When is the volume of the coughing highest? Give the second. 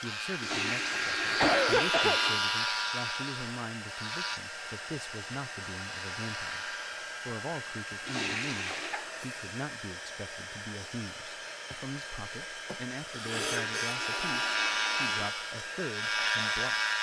2 s.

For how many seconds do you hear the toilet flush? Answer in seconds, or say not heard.
5 s.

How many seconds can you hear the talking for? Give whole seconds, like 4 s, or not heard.
17 s.